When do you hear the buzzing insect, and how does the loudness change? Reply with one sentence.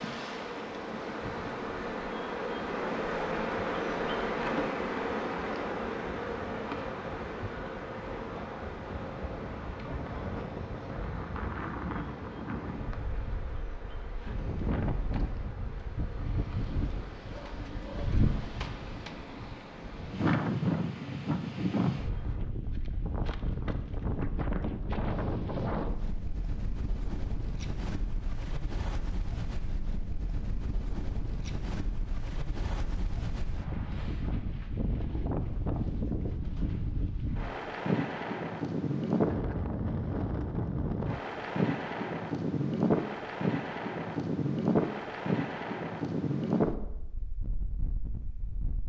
You can hear the buzzing insect from 0.0 to 22.4 s, getting quieter.